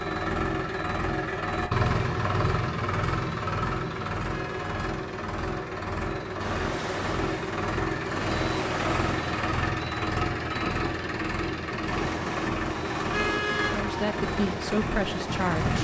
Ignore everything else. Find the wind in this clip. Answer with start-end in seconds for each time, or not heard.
6.3-15.8.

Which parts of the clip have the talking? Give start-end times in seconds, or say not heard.
13.7-15.8.